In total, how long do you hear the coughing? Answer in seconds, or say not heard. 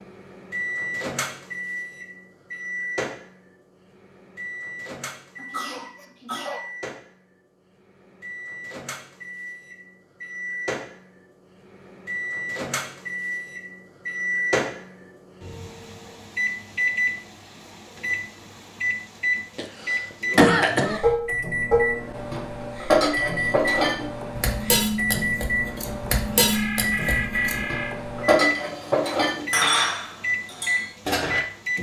3 s.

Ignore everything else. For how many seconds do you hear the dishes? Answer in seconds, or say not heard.
11 s.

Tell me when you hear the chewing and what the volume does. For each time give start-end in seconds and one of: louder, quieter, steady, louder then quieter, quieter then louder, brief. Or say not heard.
not heard.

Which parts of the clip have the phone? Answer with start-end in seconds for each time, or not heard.
26.5-27.9.